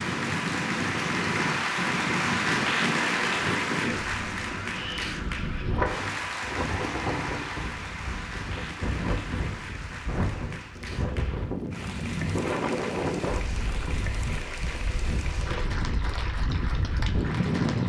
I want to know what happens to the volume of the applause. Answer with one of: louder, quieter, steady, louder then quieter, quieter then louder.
quieter.